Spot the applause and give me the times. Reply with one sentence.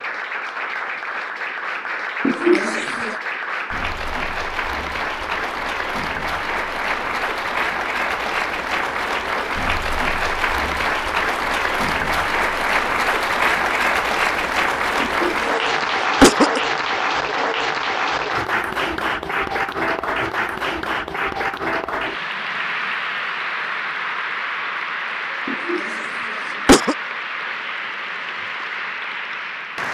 You can hear the applause from 0.0 to 29.8 s.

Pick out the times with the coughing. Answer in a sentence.
The coughing can be heard from 2.2 to 3.1 s, from 15.0 to 15.6 s, from 16.2 to 16.6 s and from 25.4 to 26.9 s.